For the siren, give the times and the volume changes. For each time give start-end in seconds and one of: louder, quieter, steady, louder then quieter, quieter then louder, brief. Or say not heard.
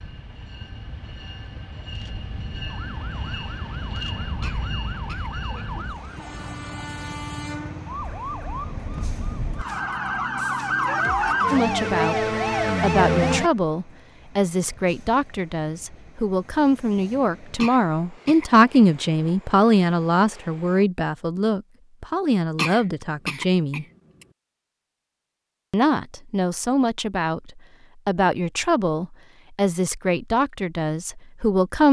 2.6-13.5 louder.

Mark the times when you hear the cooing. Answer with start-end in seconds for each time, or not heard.
not heard.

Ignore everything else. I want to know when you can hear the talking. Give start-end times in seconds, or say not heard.
11.5-23.9, 25.7-31.8.